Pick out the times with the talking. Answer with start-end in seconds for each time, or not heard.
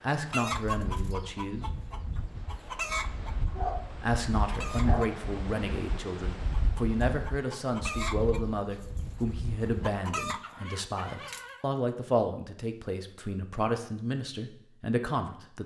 0.0-1.7, 4.0-15.6.